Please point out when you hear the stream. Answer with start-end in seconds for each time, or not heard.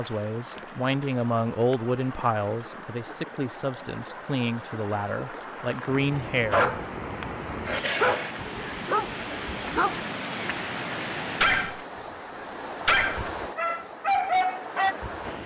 0.0-15.4.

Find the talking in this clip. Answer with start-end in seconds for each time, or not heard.
0.0-6.8.